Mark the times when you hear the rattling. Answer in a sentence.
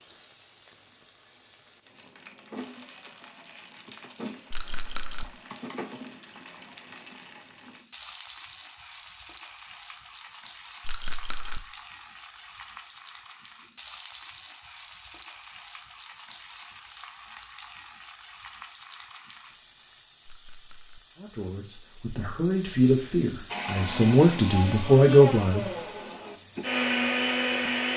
You can hear the rattling from 4.5 to 5.2 s, from 10.8 to 11.6 s and from 20.2 to 21.0 s.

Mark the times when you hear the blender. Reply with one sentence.
You can hear the blender from 23.4 to 27.9 s.